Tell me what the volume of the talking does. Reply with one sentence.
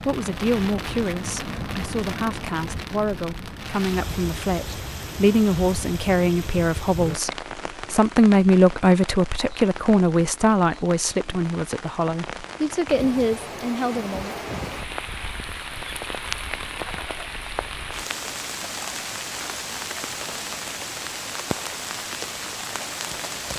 The volume of the talking goes up, then down.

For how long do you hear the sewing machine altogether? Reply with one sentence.
You can't hear the sewing machine here.